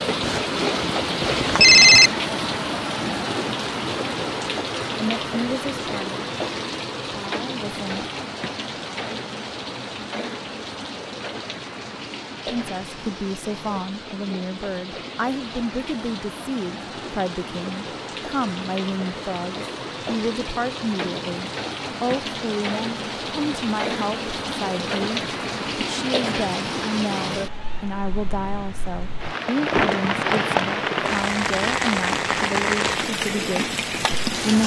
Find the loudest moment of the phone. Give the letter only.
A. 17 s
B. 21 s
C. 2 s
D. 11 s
C.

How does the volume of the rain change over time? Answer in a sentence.
The volume of the rain goes down, then up.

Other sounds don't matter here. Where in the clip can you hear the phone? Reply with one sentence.
The phone can be heard from 0.2 to 2.1 s.